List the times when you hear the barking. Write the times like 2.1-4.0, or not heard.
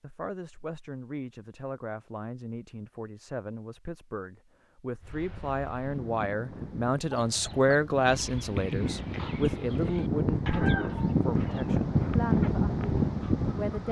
not heard.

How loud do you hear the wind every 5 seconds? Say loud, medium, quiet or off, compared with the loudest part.
off, medium, loud.